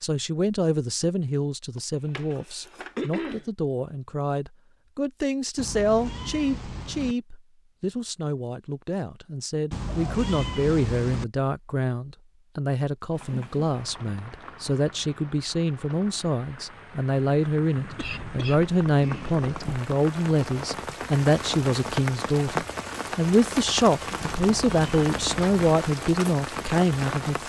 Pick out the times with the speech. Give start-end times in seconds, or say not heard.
0.0-27.4.